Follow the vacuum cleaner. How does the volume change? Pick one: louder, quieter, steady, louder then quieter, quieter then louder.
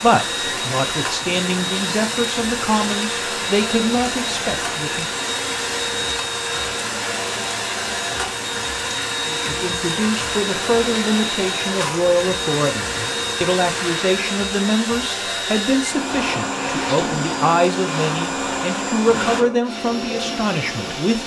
steady.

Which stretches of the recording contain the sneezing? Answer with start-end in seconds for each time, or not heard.
16.5-17.2.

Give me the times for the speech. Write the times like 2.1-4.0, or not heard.
0.0-5.2, 9.2-21.2.